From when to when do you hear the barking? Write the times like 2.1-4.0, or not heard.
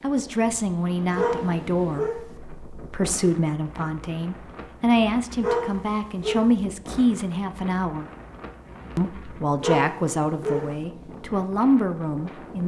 1.1-2.3, 5.4-6.5, 9.6-10.8.